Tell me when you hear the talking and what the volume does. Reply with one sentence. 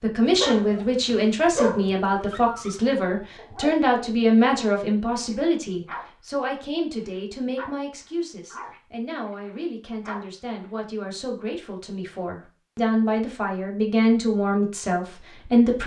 You can hear the talking from 0.0 to 15.8 s, getting quieter then louder.